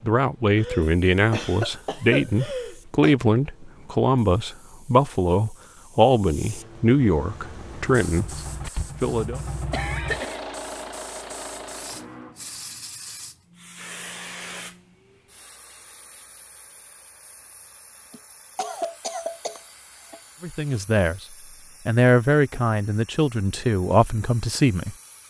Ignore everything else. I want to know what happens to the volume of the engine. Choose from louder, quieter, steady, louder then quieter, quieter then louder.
louder then quieter.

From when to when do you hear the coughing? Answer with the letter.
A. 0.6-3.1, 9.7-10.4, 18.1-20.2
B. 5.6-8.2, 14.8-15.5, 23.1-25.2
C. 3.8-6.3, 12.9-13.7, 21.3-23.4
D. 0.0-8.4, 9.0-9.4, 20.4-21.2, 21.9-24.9
A.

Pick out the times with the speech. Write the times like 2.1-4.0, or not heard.
0.0-8.4, 9.0-9.4, 20.4-21.2, 21.9-24.9.